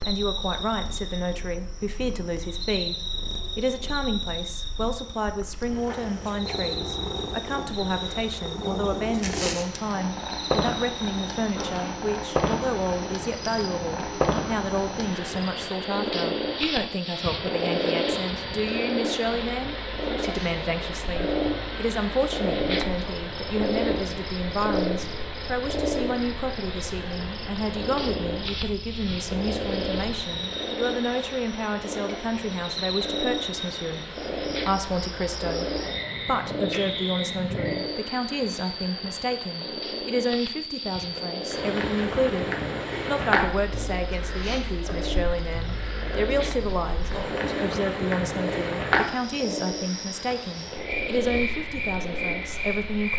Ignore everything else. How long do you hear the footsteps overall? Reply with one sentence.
You can't hear the footsteps here.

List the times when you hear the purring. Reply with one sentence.
You can hear the purring from 0.1 to 53.1 s.